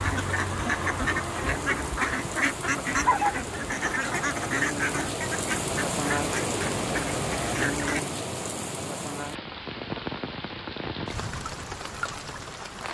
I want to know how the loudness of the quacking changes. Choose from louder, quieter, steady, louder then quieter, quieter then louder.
quieter.